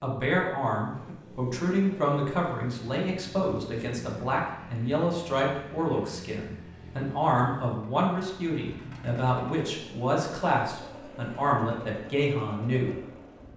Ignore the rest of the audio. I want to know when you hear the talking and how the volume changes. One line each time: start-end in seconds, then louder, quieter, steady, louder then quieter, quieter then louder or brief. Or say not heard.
0.0-12.9 steady.